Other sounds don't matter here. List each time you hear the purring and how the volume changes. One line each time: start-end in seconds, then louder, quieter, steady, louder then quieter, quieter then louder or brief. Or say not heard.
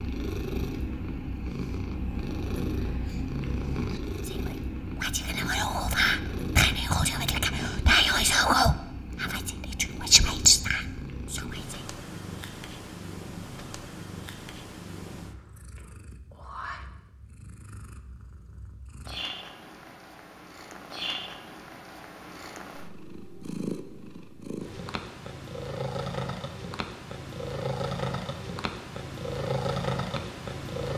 0.0-30.9 quieter then louder.